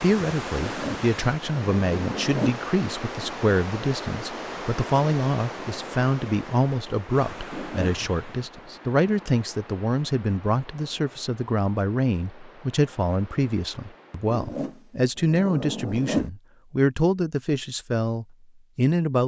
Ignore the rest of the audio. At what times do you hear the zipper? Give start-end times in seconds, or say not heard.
0.6-2.5, 7.5-8.1, 14.3-16.3.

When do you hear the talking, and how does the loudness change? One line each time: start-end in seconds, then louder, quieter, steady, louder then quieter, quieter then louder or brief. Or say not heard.
0.0-19.2 steady.